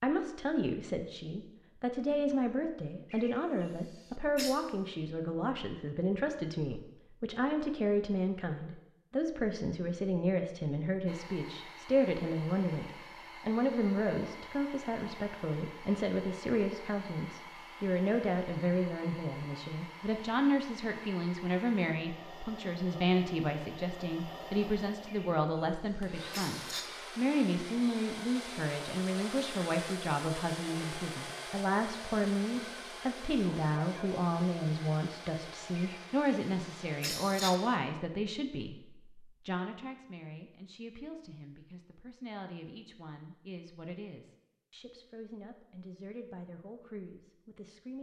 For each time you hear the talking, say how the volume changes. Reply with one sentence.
You can hear the talking from 0.0 to 47.9 s, getting quieter.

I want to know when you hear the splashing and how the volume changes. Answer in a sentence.
You can't hear the splashing here.